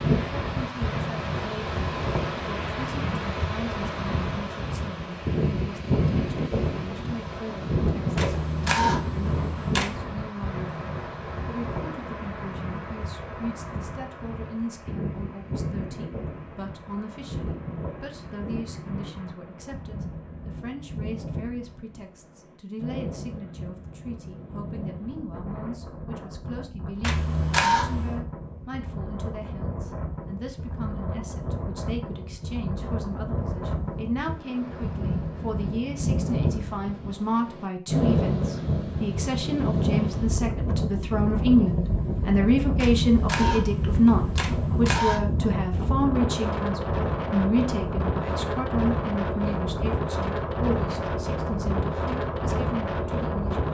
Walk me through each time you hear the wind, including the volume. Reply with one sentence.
The wind can be heard from 0.0 to 53.6 s, getting quieter then louder.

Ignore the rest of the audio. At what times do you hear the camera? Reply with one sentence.
The camera can be heard from 8.2 to 10.1 s, from 27.0 to 28.2 s and from 42.8 to 45.2 s.